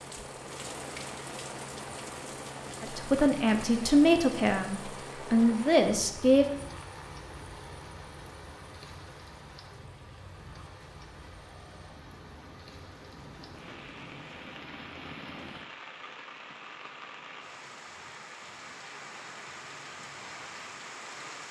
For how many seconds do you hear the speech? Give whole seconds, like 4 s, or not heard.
4 s.